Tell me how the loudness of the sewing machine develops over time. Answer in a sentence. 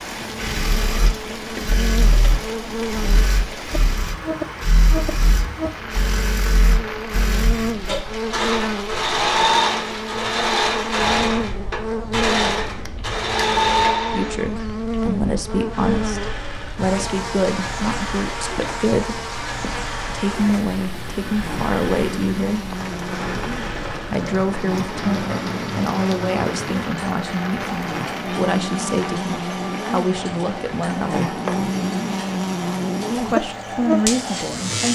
The loudness of the sewing machine goes up, then down.